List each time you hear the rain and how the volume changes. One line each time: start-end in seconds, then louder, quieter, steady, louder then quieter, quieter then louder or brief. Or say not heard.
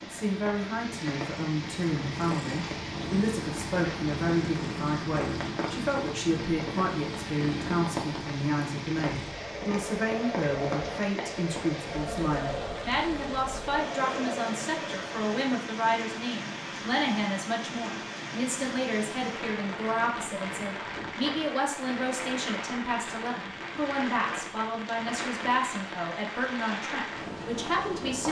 0.0-28.2 steady.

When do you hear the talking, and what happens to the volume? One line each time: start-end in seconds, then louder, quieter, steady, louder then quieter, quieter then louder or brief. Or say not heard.
0.0-28.2 steady.